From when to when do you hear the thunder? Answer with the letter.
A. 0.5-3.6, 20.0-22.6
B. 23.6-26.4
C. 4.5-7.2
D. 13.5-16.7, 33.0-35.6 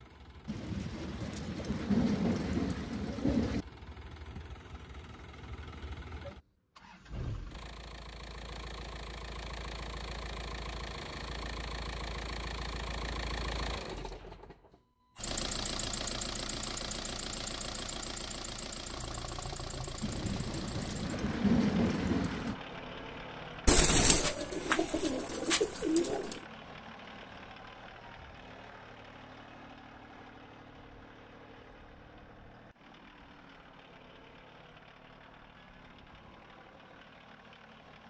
A.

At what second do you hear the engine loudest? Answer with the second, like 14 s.
16 s.